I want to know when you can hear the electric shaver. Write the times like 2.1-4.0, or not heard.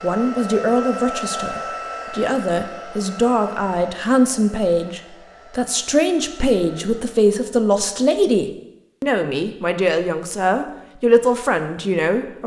not heard.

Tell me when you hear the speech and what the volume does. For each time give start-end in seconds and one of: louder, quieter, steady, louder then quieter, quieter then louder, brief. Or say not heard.
0.0-12.4 steady.